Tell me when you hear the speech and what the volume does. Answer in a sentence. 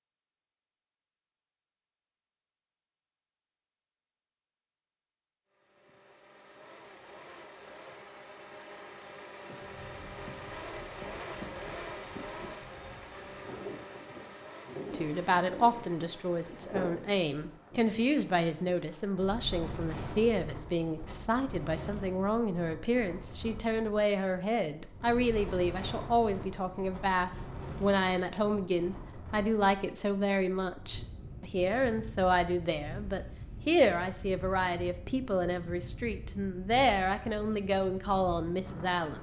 You can hear the speech from 14.9 to 39.1 s, at a steady volume.